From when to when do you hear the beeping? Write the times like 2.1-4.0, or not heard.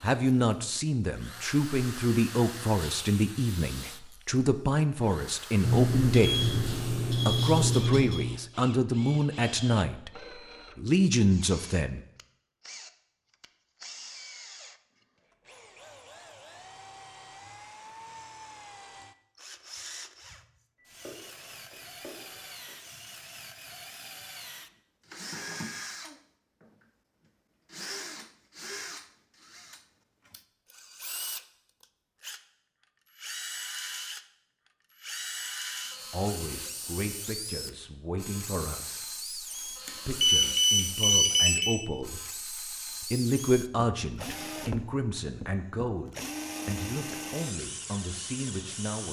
5.6-8.2, 20.8-22.8, 39.9-41.8.